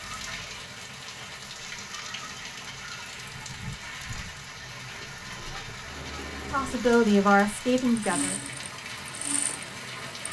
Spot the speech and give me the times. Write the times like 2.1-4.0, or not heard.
6.5-8.3.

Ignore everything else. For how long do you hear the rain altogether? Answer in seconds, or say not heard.
10 s.